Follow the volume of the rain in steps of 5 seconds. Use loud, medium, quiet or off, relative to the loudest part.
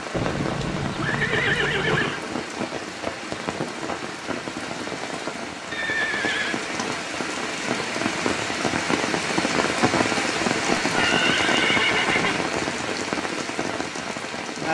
medium, loud, loud.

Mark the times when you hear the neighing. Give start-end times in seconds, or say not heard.
0.1-2.2, 5.7-6.7, 10.8-12.4.